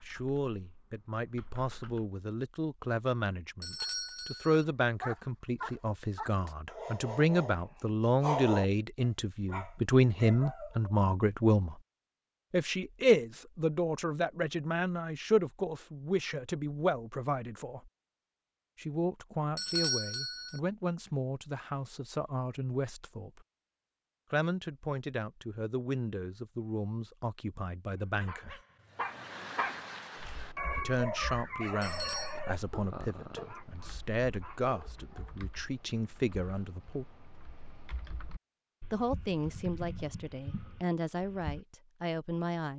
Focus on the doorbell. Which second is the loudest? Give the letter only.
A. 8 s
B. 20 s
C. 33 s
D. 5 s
B.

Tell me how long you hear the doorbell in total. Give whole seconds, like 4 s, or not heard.
3 s.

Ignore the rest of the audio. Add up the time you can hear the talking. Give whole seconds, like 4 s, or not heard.
36 s.